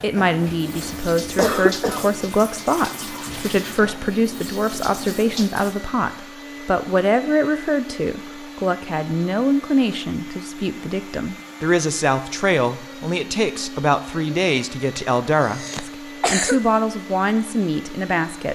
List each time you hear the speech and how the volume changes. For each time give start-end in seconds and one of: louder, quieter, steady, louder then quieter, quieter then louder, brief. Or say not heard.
0.0-18.5 steady.